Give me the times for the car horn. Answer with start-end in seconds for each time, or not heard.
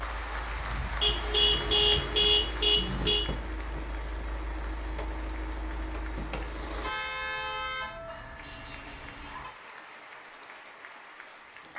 1.0-3.2, 6.8-9.5.